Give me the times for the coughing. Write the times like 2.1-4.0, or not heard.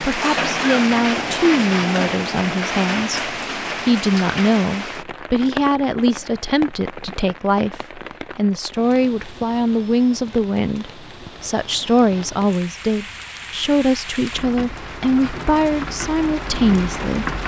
0.2-0.8.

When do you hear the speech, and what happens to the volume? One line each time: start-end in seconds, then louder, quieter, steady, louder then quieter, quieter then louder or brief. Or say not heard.
0.0-17.3 steady.